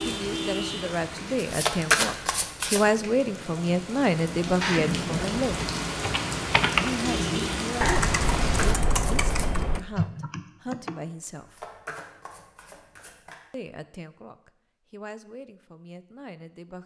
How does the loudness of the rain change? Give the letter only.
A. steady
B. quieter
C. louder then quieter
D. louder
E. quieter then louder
E.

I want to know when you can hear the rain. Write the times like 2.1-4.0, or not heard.
0.0-8.8.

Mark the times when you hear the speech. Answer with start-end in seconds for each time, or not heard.
0.0-5.6, 6.8-11.7, 13.5-16.8.